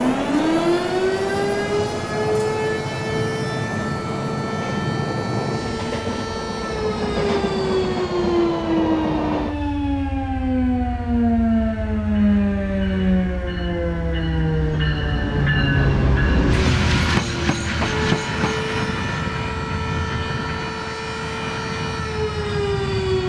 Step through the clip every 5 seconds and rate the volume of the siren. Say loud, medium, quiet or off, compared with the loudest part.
loud, loud, loud, medium, medium.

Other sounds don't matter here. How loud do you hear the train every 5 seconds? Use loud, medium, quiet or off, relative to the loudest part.
loud, loud, quiet, loud, medium.